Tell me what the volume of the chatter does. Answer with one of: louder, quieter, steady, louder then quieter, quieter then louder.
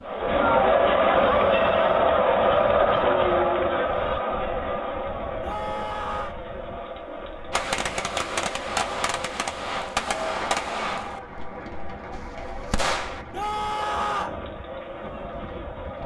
quieter.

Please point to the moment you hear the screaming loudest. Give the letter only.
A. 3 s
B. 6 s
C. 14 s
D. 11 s
C.